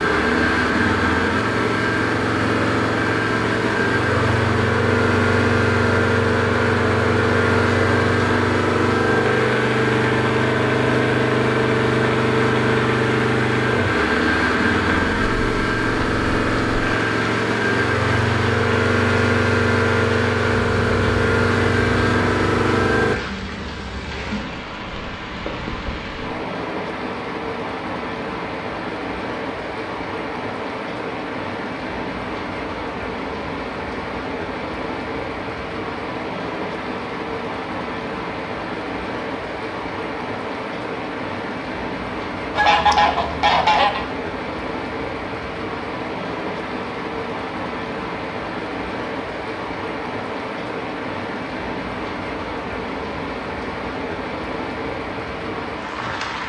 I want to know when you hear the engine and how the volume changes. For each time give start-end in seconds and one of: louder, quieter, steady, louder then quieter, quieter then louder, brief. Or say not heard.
0.0-23.2 steady.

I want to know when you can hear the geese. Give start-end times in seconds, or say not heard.
42.5-44.0.